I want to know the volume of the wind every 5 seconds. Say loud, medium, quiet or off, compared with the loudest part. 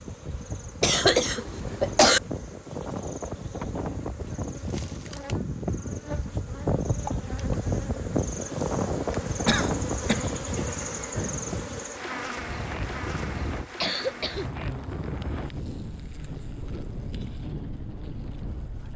medium, loud, medium, medium.